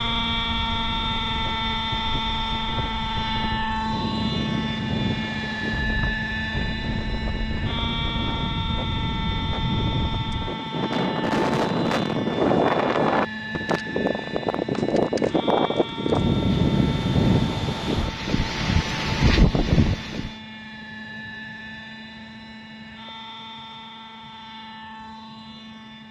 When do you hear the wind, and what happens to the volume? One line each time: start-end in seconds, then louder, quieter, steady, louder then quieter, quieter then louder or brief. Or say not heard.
0.2-20.4 louder.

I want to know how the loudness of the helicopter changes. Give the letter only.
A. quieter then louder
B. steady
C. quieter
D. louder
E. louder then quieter
C.